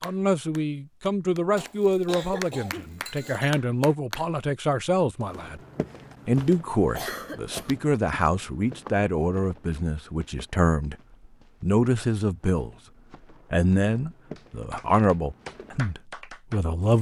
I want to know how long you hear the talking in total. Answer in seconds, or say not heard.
15 s.